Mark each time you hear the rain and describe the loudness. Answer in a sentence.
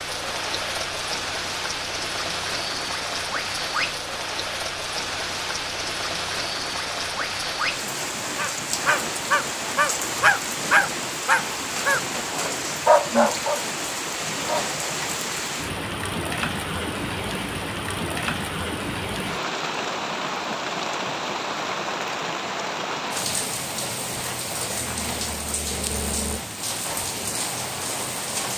You can hear the rain from 0.0 to 28.5 s, at a steady volume.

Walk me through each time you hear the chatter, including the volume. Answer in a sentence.
You can't hear the chatter here.